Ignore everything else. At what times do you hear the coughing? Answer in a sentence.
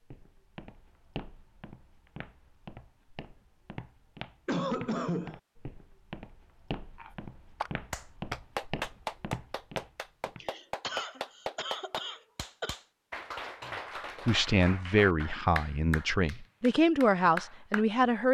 You can hear the coughing from 4.5 to 5.4 s and from 10.4 to 12.8 s.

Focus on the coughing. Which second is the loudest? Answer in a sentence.
The volume of the coughing peaks at 5 seconds.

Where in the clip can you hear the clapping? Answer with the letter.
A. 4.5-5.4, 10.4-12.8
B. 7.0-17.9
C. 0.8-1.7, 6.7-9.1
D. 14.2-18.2
B.